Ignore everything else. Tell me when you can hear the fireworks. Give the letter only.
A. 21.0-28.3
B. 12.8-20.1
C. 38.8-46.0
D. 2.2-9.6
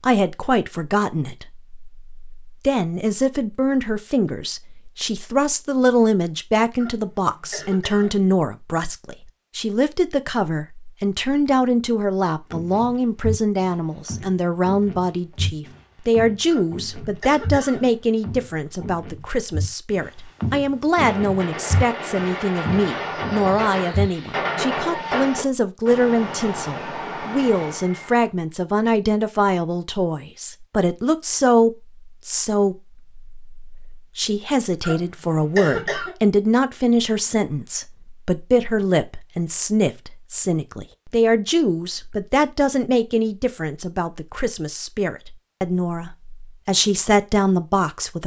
A.